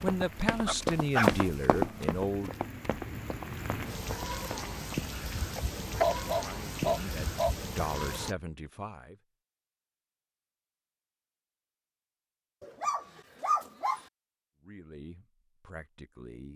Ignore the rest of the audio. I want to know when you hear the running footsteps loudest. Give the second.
1 s.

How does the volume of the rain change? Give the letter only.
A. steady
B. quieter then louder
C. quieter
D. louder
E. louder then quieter
D.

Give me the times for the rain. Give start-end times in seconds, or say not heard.
0.0-8.3.